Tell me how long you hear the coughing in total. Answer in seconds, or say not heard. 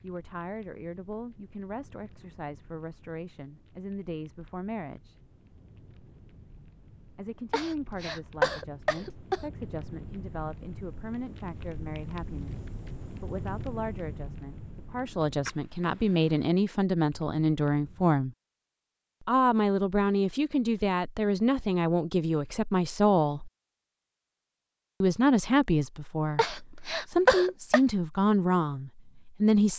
3 s.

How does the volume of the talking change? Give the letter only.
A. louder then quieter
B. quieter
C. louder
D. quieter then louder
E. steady
C.